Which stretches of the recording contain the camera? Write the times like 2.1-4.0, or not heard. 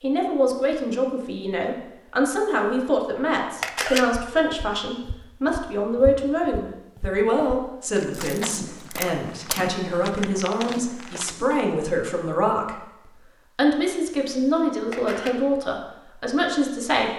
3.6-4.0, 8.1-9.7, 14.9-15.3.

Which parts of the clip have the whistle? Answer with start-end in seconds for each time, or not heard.
not heard.